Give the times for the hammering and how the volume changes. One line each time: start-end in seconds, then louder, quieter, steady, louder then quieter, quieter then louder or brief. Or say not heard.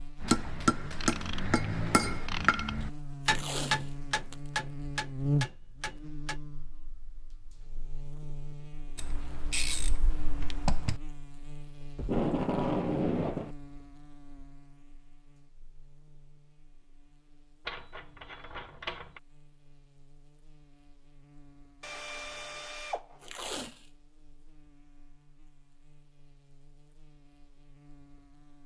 0.2-6.4 quieter.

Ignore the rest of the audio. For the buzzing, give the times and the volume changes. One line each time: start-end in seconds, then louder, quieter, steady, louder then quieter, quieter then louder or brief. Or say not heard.
0.0-28.6 quieter.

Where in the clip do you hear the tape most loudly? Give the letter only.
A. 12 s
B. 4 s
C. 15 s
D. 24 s
A.